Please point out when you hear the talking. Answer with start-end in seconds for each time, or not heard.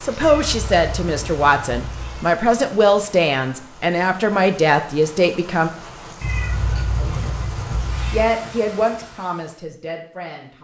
0.0-5.7, 8.1-10.5.